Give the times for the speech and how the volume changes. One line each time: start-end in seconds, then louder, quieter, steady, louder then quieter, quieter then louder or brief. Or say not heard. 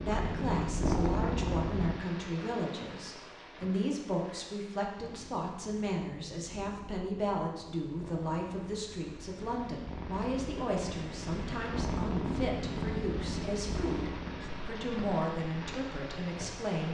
0.1-16.9 steady.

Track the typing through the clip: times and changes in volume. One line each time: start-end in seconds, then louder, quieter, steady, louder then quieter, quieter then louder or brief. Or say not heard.
not heard.